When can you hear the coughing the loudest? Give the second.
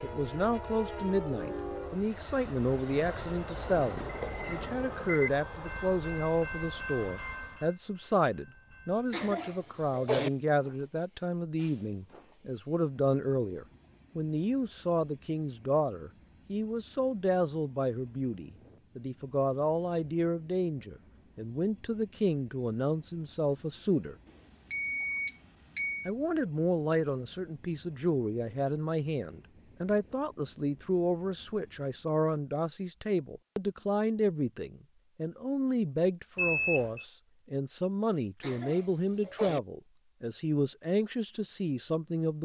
10 s.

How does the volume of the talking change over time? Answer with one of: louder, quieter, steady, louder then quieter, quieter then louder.
steady.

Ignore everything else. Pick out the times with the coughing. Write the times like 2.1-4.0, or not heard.
9.1-10.3, 38.4-39.6.